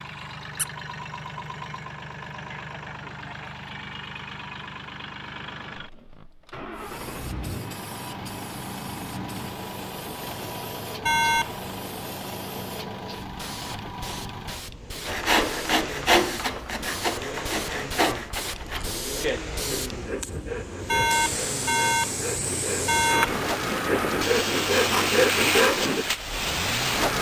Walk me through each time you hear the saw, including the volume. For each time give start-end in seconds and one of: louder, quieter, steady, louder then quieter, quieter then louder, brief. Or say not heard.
15.1-26.1 quieter then louder.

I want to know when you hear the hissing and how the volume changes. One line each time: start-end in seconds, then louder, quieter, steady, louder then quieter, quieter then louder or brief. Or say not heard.
6.7-27.1 louder.